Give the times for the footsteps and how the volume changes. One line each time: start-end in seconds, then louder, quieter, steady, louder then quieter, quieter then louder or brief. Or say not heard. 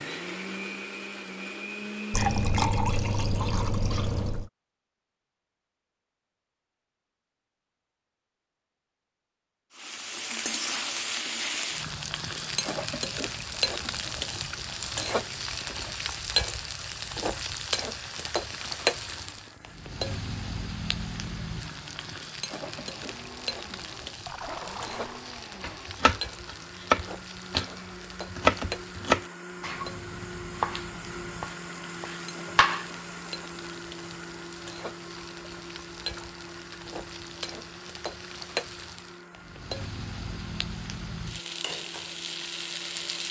not heard.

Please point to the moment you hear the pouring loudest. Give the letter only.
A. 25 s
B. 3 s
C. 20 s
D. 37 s
B.